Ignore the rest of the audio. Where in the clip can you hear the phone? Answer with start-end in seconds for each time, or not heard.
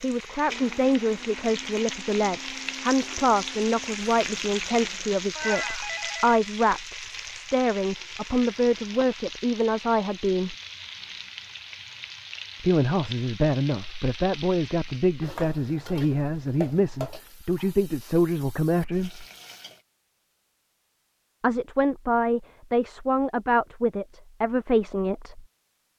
5.3-6.8.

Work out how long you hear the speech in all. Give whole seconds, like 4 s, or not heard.
21 s.